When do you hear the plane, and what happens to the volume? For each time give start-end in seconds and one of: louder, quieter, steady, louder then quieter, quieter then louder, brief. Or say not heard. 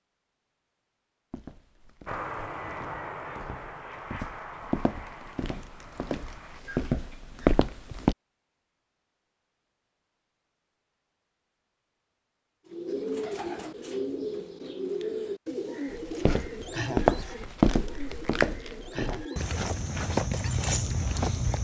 2.0-6.7 quieter.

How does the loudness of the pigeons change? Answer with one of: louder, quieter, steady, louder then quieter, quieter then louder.
quieter.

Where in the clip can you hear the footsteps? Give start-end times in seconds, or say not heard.
1.3-8.2, 15.9-21.5.